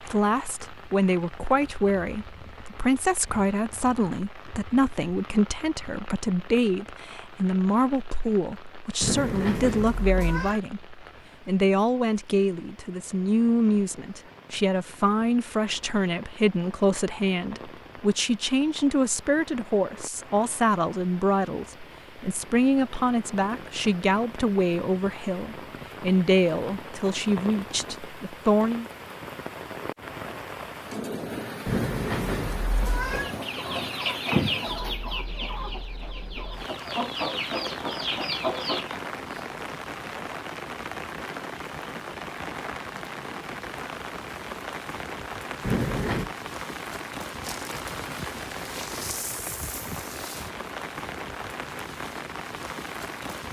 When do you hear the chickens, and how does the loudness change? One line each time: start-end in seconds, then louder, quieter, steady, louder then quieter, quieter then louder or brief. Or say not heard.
33.1-39.0 quieter then louder.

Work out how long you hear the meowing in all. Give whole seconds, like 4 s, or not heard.
4 s.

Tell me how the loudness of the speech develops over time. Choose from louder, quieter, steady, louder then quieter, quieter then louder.
steady.